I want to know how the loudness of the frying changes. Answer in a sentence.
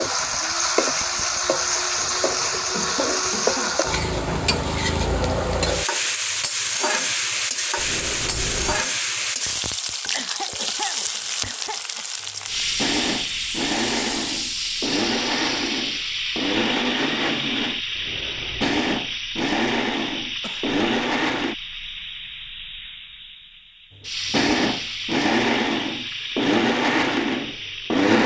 The loudness of the frying goes down.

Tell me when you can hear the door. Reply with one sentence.
You can hear the door from 7.8 to 8.8 s and from 17.9 to 18.8 s.